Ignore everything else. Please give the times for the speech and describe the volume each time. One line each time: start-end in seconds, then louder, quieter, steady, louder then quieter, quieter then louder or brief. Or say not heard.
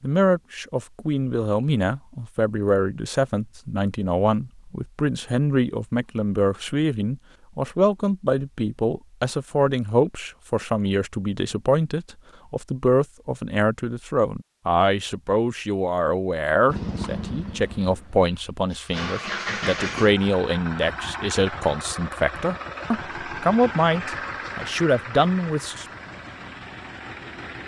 0.0-25.9 steady.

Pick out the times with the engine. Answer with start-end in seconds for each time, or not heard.
16.6-27.6.